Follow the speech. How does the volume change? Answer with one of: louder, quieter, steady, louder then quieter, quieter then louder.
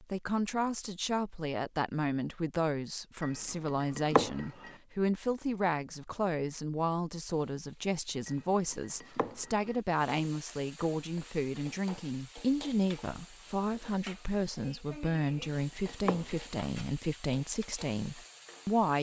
steady.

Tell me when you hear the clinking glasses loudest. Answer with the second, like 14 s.
4 s.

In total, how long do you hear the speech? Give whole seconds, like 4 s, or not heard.
19 s.